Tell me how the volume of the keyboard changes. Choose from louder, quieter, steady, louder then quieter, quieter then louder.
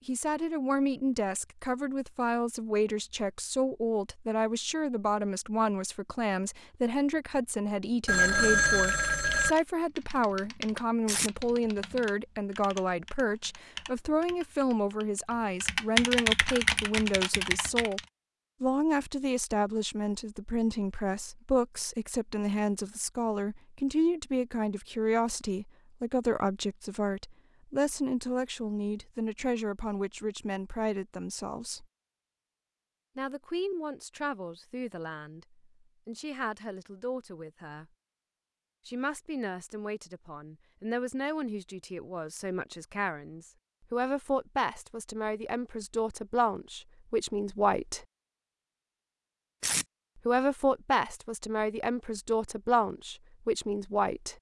louder.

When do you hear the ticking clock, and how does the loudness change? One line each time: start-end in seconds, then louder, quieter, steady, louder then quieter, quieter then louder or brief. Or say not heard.
not heard.